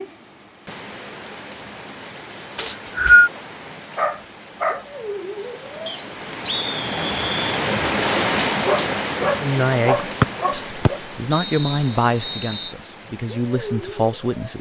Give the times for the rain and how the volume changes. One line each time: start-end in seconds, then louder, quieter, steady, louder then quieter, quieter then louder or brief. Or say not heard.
0.0-14.5 louder then quieter.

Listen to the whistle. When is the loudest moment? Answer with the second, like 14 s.
3 s.